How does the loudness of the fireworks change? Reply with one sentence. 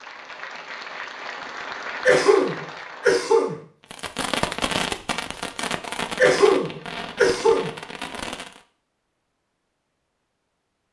The loudness of the fireworks goes down.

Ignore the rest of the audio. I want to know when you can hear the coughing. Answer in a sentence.
The coughing can be heard from 2.0 to 3.5 s and from 6.2 to 7.7 s.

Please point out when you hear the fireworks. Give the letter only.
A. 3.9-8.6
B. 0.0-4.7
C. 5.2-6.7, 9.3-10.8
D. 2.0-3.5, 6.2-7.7
A.